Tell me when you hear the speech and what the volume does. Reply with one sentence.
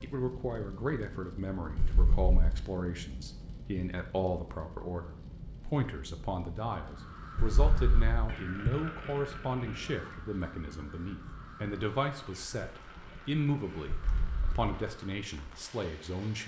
You can hear the speech from 0.0 to 16.4 s, at a steady volume.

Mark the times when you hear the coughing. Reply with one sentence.
You can hear the coughing from 1.8 to 2.6 s, from 7.3 to 8.7 s and from 13.8 to 14.6 s.